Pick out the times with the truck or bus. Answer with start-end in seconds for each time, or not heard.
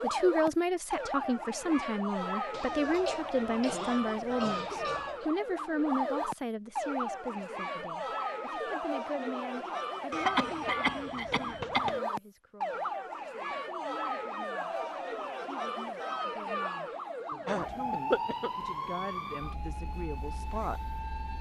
not heard.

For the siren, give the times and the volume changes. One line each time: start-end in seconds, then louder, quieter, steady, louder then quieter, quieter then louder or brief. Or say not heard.
0.0-21.3 steady.